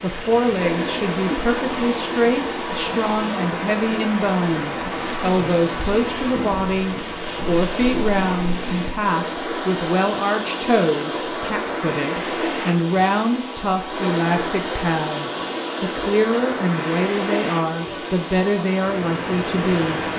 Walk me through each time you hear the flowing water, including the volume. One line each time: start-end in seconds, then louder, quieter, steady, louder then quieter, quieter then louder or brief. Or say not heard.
0.0-20.1 steady.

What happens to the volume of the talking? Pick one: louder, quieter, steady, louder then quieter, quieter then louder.
steady.